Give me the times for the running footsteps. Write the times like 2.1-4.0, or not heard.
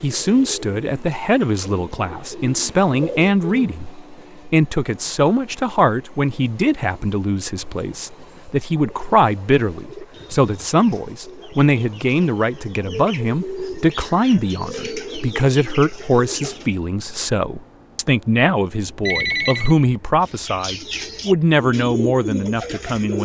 not heard.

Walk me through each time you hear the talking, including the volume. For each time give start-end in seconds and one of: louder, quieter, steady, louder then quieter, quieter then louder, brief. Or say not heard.
0.0-23.2 steady.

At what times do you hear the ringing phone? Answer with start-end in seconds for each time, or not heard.
19.0-19.8.